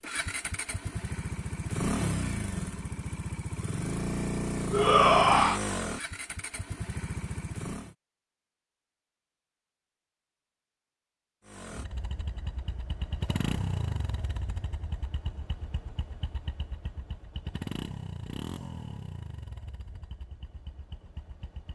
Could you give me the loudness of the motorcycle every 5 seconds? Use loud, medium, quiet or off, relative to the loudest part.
loud, loud, medium, medium, quiet.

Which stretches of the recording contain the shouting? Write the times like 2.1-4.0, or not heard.
4.7-5.6.